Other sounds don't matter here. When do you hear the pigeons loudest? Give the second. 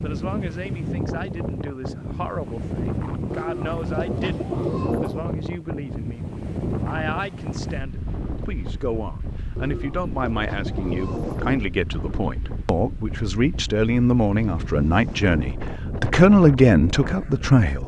5 s.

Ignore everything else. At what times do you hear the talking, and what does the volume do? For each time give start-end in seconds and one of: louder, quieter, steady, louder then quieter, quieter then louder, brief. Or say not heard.
0.0-17.8 louder.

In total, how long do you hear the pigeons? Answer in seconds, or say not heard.
4 s.